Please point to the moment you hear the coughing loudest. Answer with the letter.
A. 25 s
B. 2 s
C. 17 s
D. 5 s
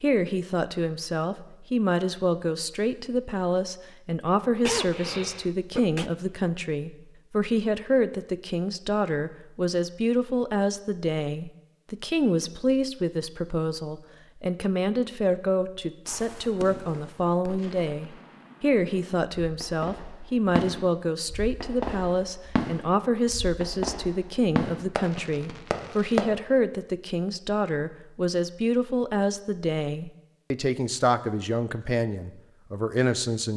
D.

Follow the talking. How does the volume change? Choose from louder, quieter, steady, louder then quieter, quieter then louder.
steady.